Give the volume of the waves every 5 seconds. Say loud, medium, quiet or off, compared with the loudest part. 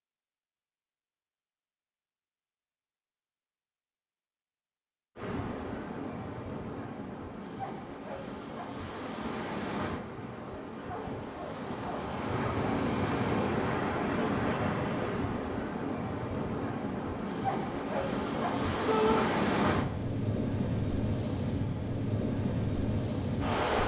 off, medium, loud, loud, loud.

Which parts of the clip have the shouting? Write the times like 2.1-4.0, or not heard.
18.9-19.3.